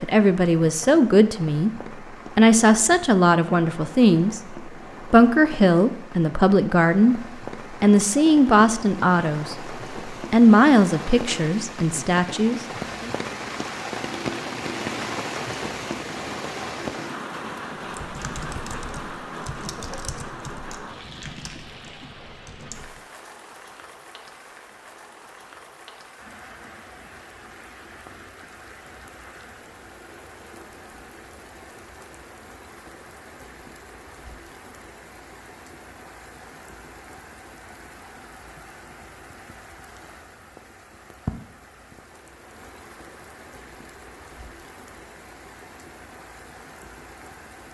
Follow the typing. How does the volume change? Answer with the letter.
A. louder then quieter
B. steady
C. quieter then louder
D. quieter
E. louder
D.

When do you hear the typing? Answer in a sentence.
The typing can be heard from 17.8 to 23.0 s.